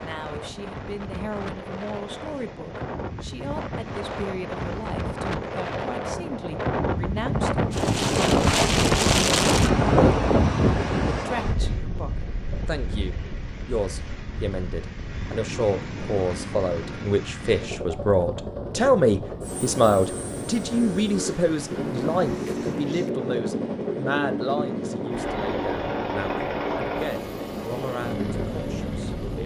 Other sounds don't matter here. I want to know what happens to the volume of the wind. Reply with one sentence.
The loudness of the wind goes up, then down.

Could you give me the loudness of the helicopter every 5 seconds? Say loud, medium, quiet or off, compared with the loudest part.
quiet, quiet, quiet, medium, loud, loud.